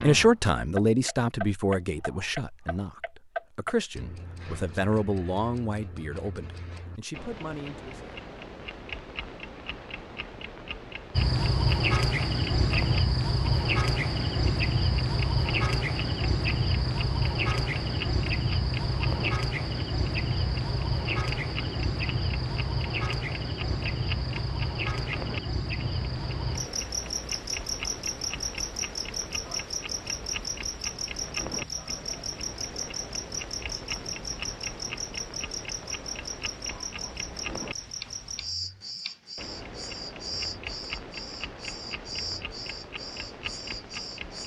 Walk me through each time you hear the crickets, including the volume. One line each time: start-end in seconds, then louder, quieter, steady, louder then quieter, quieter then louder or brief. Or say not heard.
11.2-44.4 quieter.